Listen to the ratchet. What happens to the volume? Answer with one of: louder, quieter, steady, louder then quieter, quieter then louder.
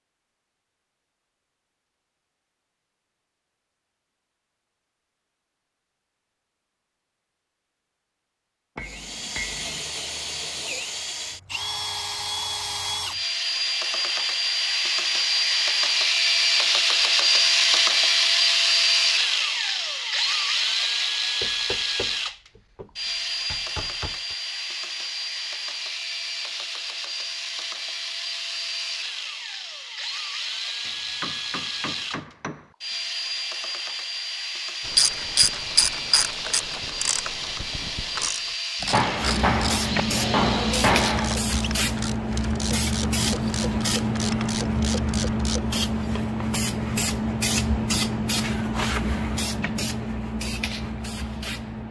quieter.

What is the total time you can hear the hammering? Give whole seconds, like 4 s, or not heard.
8 s.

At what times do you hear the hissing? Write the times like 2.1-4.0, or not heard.
39.1-51.8.